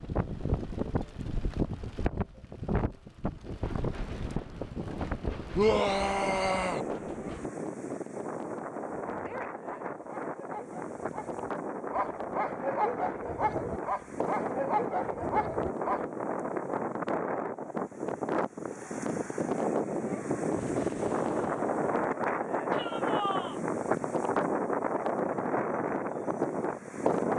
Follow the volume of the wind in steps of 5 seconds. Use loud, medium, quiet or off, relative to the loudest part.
medium, medium, medium, loud, loud, loud.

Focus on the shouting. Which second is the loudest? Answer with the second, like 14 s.
6 s.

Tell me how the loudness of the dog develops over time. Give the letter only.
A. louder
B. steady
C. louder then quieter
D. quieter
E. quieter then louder
A.